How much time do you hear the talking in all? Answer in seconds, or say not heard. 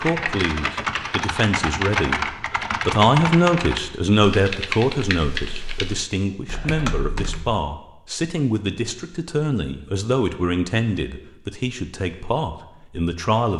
13 s.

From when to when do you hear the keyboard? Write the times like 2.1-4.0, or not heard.
0.0-7.5.